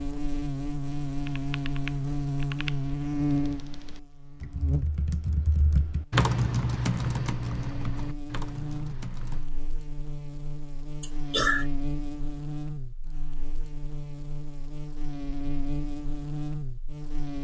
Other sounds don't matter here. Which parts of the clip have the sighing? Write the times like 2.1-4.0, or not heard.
11.0-11.7.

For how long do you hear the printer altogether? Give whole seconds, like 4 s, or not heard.
not heard.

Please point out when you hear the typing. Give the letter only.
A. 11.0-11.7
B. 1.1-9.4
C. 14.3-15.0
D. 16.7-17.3
B.